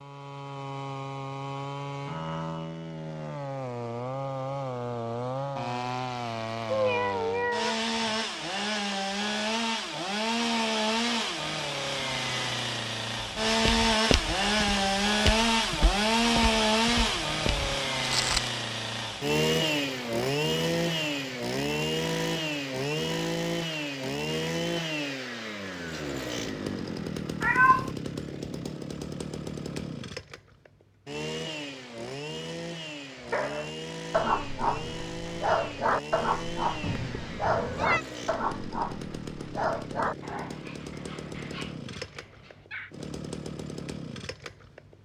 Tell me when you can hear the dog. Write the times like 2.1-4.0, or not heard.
33.1-42.9.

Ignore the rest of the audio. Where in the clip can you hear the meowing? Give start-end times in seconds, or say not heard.
6.7-8.2, 27.4-27.9, 36.8-38.0.